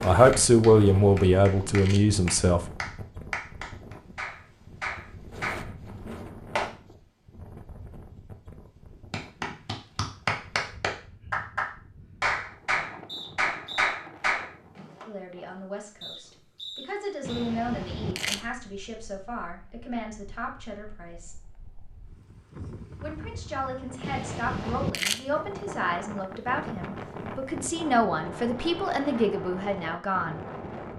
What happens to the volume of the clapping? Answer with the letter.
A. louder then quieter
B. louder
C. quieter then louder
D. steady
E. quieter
B.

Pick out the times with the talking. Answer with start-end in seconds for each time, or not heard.
0.0-2.6, 15.1-21.4, 23.0-30.4.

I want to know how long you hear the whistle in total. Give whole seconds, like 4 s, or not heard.
2 s.